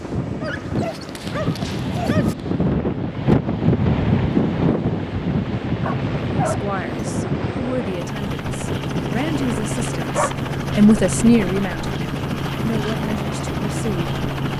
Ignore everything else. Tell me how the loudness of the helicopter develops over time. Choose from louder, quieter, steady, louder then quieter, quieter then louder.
louder.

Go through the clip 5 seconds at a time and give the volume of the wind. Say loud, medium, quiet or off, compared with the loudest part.
loud, medium, medium.